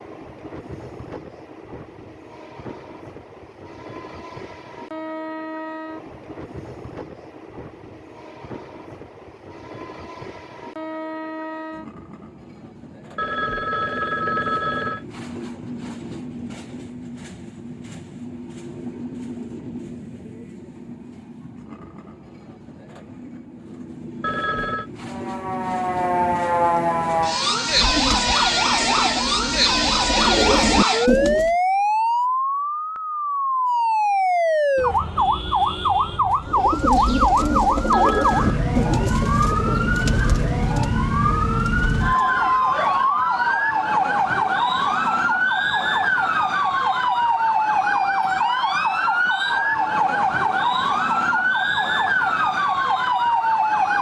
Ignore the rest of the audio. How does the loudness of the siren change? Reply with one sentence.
The volume of the siren stays about the same.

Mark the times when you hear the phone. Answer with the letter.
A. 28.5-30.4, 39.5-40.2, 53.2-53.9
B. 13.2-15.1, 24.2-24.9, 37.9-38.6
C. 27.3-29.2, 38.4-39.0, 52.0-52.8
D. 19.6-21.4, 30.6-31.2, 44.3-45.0
B.